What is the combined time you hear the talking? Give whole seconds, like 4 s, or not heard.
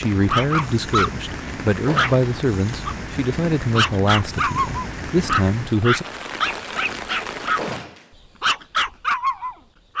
6 s.